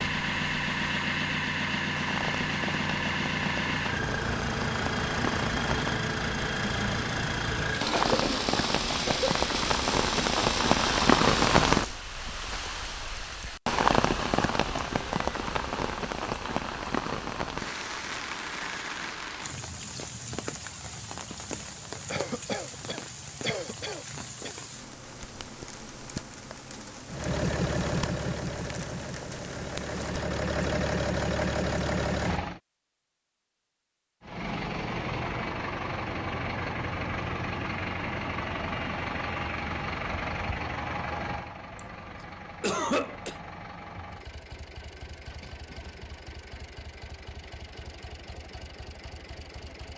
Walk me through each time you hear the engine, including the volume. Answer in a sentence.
The engine can be heard from 0.0 to 12.0 s, at a steady volume; from 27.1 to 32.6 s, getting quieter then louder; and from 34.2 to 49.9 s, getting quieter.